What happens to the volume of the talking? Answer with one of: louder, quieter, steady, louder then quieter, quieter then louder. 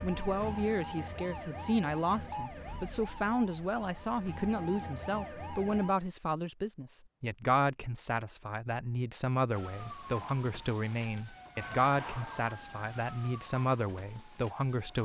steady.